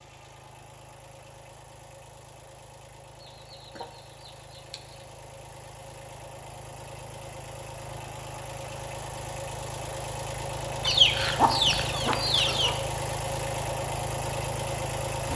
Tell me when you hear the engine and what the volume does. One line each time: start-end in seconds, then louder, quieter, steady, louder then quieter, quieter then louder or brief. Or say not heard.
0.0-15.3 louder.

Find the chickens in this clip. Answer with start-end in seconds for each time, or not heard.
3.2-5.0, 10.8-12.8.